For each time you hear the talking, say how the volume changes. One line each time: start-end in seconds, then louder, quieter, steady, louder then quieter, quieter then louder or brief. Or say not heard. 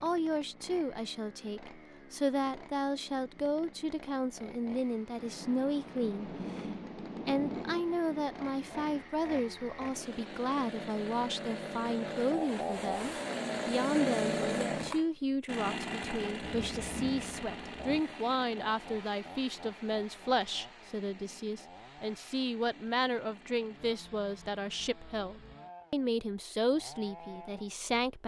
0.0-28.2 steady.